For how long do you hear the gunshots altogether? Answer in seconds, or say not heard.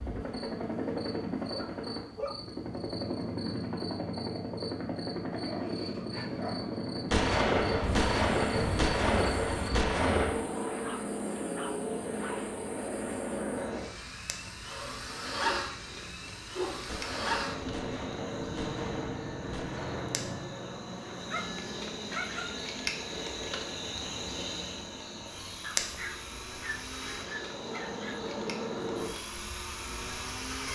7 s.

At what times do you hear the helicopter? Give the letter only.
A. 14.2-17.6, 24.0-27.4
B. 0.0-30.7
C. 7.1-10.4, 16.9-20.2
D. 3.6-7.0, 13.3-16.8
B.